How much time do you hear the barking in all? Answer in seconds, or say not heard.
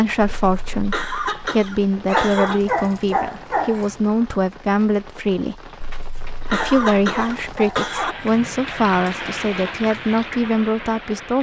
4 s.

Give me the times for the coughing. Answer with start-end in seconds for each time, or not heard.
0.2-2.6, 5.8-8.2.